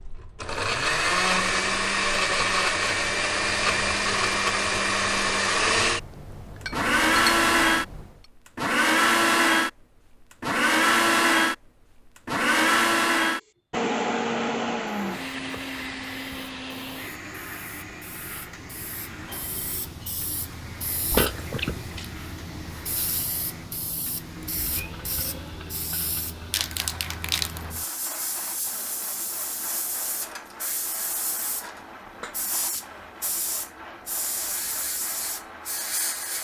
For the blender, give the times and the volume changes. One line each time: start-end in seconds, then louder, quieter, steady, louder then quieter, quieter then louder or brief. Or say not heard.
0.0-36.3 quieter.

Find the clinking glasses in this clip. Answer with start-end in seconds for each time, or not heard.
5.8-8.2, 21.1-22.1.